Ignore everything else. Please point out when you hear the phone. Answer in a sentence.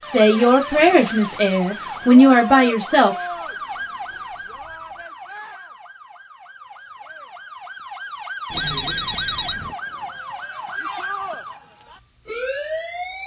You can hear the phone from 8.5 to 9.8 s.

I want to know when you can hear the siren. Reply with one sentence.
You can hear the siren from 0.0 to 13.2 s.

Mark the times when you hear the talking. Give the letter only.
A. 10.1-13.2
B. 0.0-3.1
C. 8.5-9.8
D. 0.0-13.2
B.